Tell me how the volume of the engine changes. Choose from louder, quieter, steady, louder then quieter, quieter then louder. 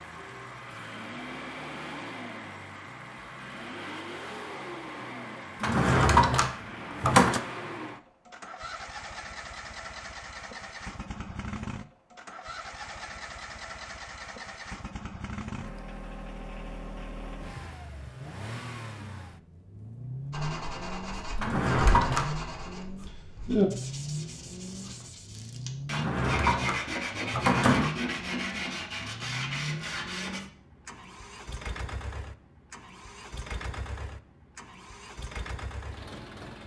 steady.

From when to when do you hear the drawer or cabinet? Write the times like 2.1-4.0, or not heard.
5.6-7.4, 21.4-22.3, 25.9-27.9.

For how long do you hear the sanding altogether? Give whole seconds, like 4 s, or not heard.
10 s.